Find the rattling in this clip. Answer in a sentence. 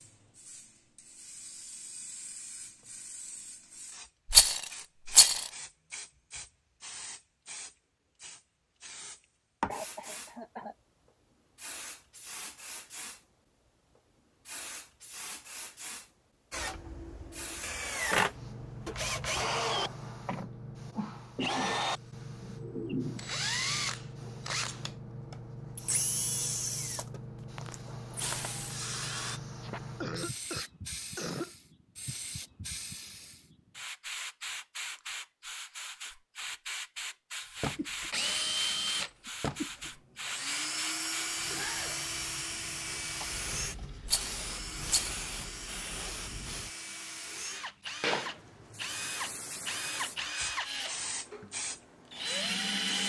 The rattling can be heard from 4.3 to 5.5 s and from 44.0 to 45.2 s.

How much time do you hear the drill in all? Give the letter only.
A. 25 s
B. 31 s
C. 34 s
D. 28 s
D.